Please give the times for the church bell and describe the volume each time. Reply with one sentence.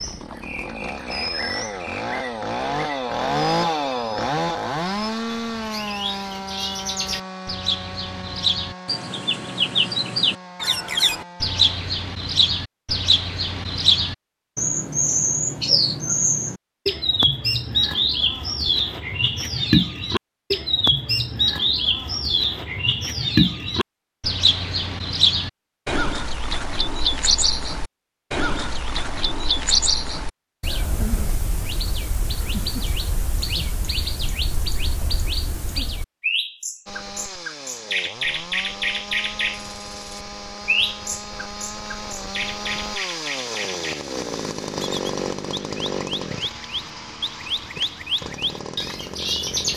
You can't hear the church bell here.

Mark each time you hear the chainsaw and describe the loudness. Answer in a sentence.
The chainsaw can be heard from 0.0 to 11.8 s, getting louder then quieter; and from 36.9 to 49.7 s, getting louder then quieter.